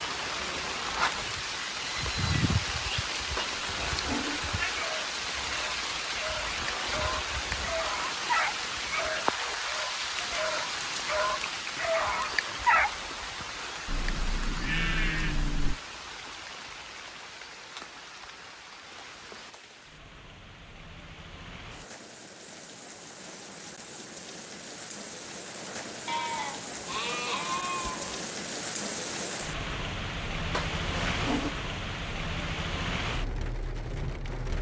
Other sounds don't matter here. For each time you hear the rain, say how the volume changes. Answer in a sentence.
The rain can be heard from 0.0 to 34.5 s, getting quieter then louder.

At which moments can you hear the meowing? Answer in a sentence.
The meowing can be heard from 3.4 to 4.7 s and from 30.5 to 31.6 s.